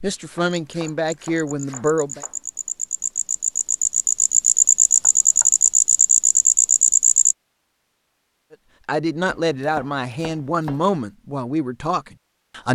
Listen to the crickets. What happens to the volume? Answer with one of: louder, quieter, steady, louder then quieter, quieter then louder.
louder.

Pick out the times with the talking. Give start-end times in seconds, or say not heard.
0.0-2.2, 8.5-12.7.